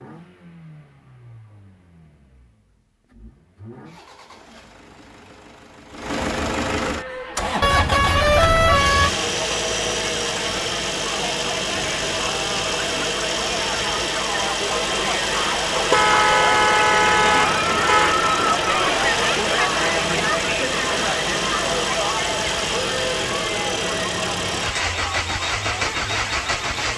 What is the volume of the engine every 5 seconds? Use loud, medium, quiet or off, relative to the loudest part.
quiet, loud, loud, loud, loud, loud.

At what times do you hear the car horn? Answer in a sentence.
The car horn can be heard from 7.6 to 9.2 s and from 15.9 to 18.1 s.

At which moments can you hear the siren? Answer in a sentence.
You can't hear the siren here.